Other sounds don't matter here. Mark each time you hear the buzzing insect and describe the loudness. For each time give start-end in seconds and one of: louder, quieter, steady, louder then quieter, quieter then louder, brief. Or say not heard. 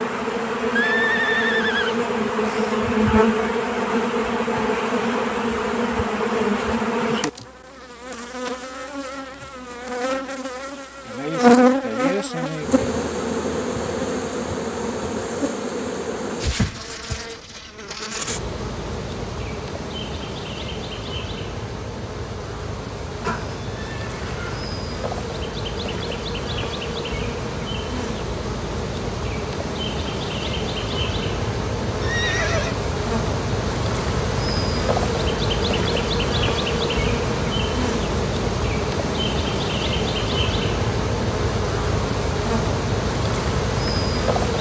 0.0-44.5 quieter then louder.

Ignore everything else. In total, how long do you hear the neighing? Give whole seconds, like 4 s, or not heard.
4 s.